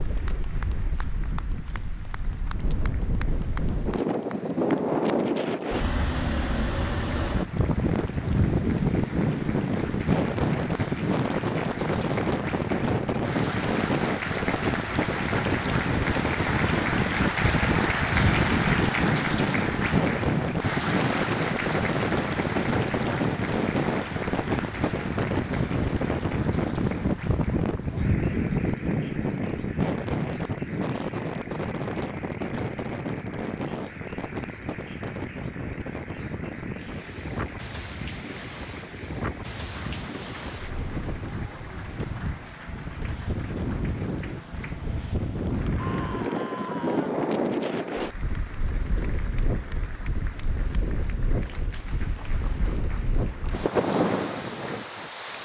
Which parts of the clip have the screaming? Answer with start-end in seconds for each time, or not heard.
45.8-47.1.